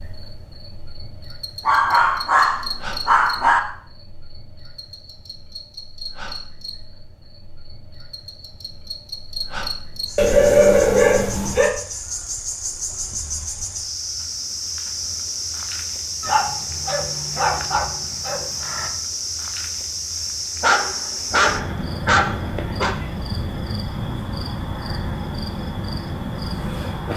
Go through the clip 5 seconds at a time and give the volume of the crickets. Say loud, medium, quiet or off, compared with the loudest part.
medium, medium, loud, loud, loud, loud.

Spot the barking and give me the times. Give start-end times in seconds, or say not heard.
1.6-3.6, 10.2-11.8, 16.2-18.9, 20.6-22.9.